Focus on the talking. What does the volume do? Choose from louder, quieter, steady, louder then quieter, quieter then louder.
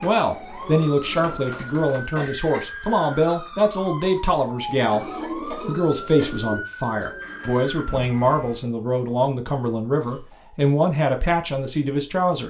steady.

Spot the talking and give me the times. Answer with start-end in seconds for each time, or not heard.
0.0-12.4.